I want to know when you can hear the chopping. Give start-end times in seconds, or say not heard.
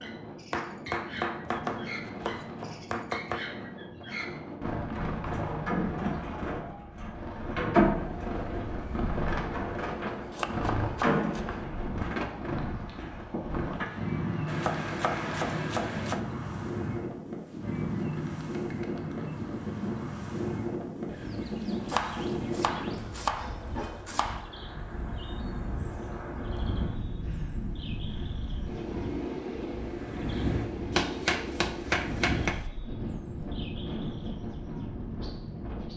0.5-3.4, 10.1-11.6, 14.4-16.2, 21.9-24.4, 30.9-32.6.